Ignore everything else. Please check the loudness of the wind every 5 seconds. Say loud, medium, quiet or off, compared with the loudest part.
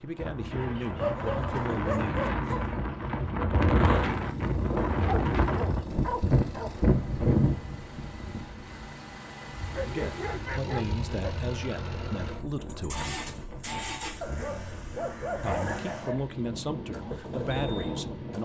loud, loud, quiet, medium.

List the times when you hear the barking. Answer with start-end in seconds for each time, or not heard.
0.9-2.7, 5.0-6.8, 9.6-11.5, 14.2-16.2.